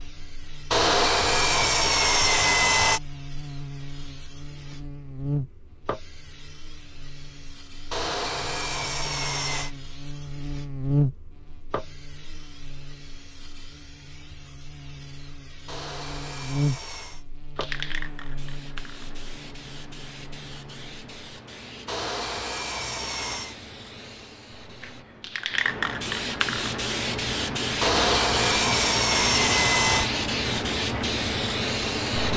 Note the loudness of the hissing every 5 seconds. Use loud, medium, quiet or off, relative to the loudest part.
quiet, quiet, quiet, quiet, quiet, loud, loud.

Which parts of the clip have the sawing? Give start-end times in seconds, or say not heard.
0.7-3.0, 7.9-9.7, 15.7-17.2, 21.9-23.6, 27.8-30.1.